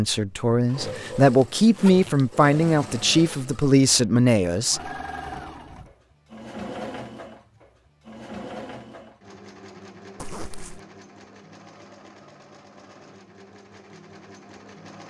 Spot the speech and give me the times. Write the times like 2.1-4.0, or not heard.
0.0-4.9.